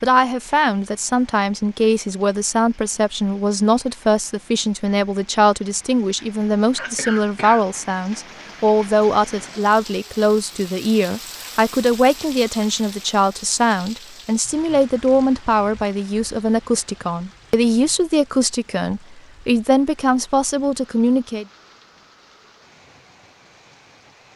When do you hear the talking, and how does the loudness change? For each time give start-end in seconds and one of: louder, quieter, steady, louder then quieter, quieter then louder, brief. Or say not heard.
0.0-21.4 steady.